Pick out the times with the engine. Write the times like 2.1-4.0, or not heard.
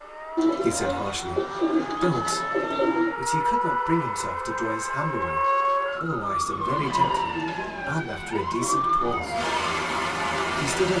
9.3-10.9.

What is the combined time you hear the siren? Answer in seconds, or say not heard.
11 s.